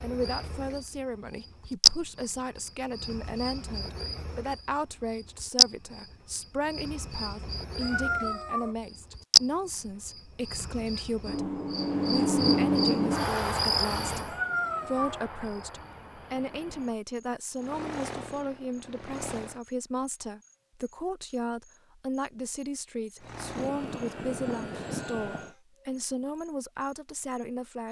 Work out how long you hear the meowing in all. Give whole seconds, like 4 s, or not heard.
2 s.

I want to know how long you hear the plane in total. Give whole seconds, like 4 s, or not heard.
4 s.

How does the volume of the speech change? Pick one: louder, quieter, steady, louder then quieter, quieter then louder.
steady.